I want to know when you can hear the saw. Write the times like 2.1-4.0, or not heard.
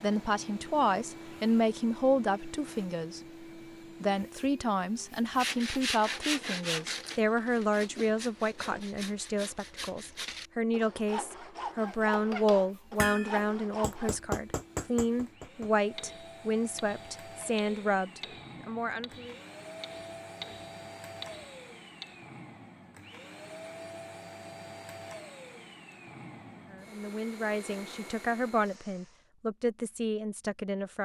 5.3-14.2.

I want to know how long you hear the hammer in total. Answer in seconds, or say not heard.
10 s.